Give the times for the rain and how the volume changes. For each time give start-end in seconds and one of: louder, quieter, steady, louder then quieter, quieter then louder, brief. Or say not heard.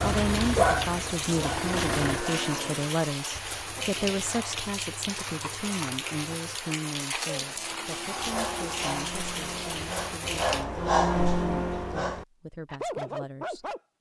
0.0-10.7 steady.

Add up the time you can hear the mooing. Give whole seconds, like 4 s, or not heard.
3 s.